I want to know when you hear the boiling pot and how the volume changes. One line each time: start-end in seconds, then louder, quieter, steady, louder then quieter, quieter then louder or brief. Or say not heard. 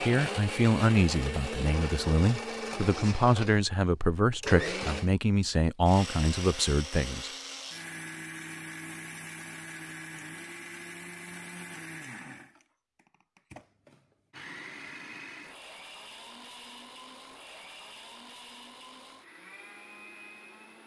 not heard.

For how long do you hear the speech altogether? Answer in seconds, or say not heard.
7 s.